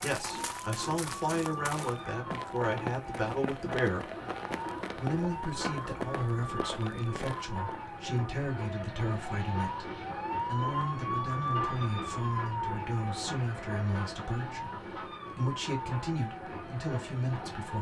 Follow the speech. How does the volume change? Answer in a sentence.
The volume of the speech stays about the same.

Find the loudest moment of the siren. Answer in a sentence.
The volume of the siren peaks at 11 seconds.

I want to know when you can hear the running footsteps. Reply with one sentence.
The running footsteps can be heard from 0.0 to 7.8 s.